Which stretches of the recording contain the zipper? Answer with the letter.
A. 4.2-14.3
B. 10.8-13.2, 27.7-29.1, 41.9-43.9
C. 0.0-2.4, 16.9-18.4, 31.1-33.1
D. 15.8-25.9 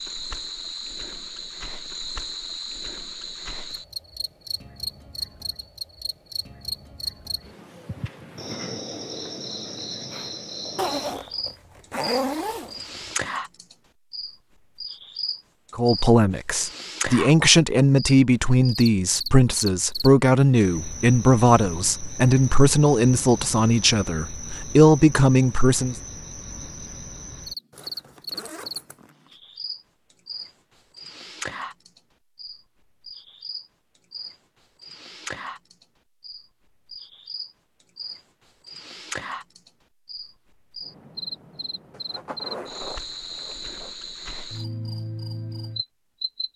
B.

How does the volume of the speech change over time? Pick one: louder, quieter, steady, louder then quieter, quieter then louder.
steady.